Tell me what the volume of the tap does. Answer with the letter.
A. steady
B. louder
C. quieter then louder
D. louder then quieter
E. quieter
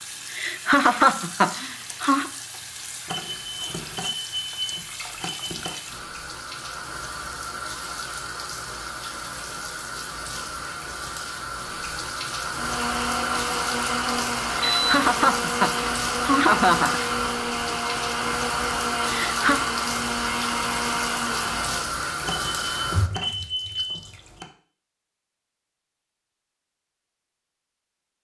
B.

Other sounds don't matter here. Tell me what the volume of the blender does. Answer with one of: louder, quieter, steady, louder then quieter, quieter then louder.
steady.